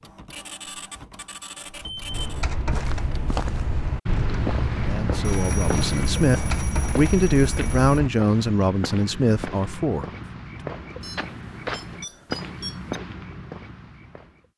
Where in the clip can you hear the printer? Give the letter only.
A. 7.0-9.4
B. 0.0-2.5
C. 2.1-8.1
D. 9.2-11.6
B.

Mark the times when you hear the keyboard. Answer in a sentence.
The keyboard can be heard from 2.1 to 8.1 s.